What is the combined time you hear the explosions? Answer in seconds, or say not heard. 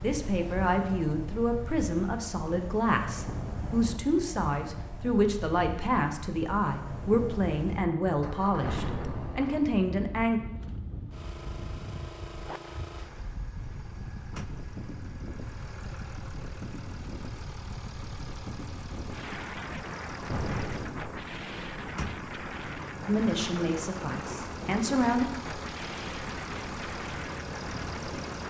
2 s.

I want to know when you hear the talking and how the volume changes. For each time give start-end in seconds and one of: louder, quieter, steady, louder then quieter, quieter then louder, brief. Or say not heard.
0.0-10.4 steady
23.1-25.2 brief.